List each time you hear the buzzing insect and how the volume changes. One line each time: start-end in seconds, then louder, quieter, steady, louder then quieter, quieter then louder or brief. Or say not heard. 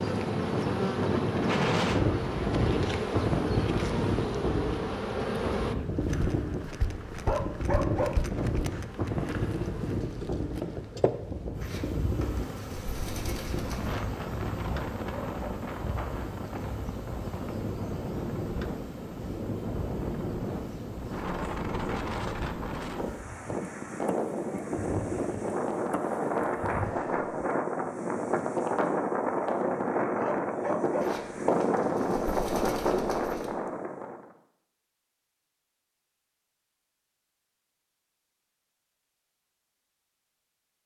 0.0-27.4 quieter.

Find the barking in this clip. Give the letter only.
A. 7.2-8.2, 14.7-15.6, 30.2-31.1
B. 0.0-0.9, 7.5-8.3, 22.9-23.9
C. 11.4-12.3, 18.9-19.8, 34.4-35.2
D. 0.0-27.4
A.